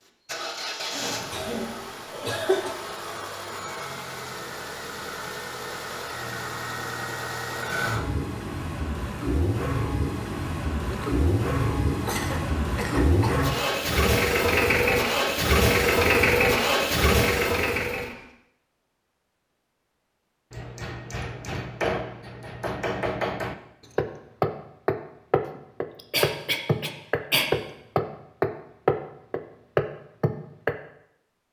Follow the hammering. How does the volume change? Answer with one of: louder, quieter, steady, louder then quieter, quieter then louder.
louder.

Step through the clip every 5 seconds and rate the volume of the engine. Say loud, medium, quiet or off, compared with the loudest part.
quiet, medium, loud, loud, off, off, off.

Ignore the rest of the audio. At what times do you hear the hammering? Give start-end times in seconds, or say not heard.
20.5-30.8.